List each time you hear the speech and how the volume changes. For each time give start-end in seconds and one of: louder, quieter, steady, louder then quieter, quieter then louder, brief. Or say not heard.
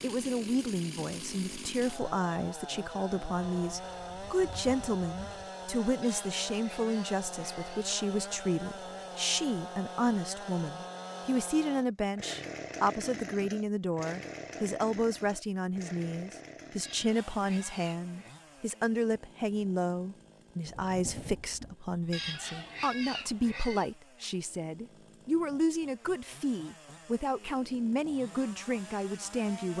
0.0-29.7 steady.